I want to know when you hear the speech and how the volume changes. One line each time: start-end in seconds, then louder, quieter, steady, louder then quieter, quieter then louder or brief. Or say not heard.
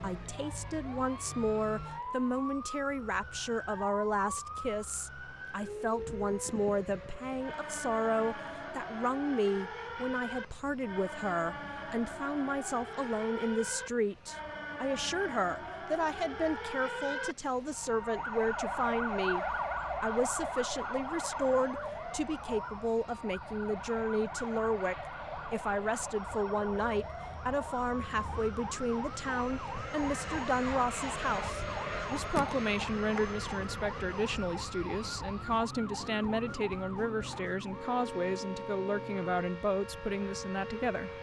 0.0-41.1 steady.